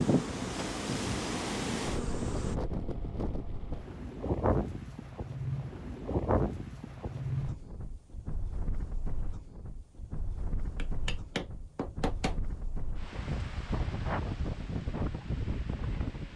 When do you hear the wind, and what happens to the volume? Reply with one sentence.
You can hear the wind from 0.0 to 16.3 s, getting quieter then louder.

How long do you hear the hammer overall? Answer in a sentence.
The hammer can be heard for 2 seconds in total.